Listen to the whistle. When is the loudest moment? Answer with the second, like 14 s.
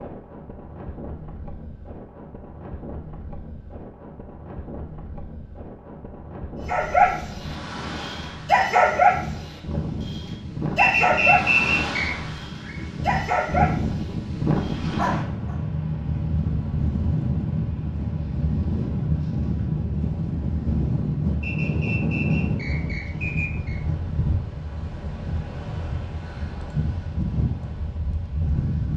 11 s.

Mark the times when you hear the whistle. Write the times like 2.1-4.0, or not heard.
10.8-12.1, 21.4-23.8.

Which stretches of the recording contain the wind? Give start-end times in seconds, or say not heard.
0.0-28.9.